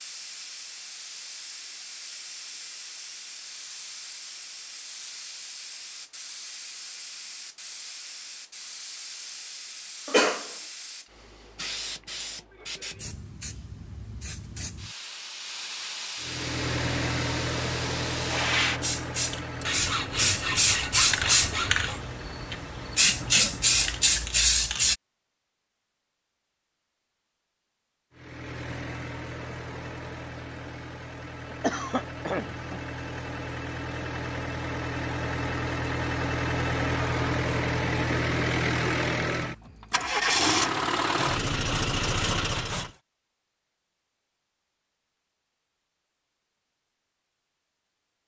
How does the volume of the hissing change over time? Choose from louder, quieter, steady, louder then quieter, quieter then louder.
louder.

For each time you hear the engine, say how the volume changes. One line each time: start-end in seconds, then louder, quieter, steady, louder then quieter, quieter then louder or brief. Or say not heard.
16.2-24.4 quieter
28.1-42.9 louder.